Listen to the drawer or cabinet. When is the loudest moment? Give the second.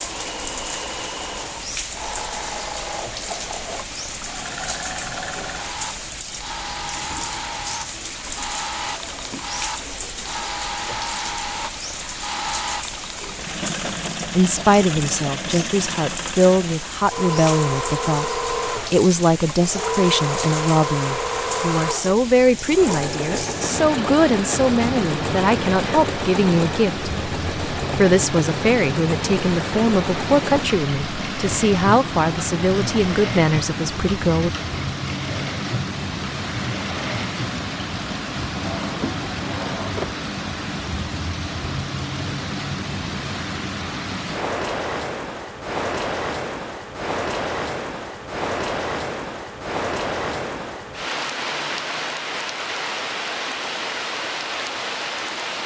40 s.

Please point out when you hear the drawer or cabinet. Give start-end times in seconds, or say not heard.
8.8-10.0, 38.5-40.2.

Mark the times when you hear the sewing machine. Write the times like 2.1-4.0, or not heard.
0.0-37.5.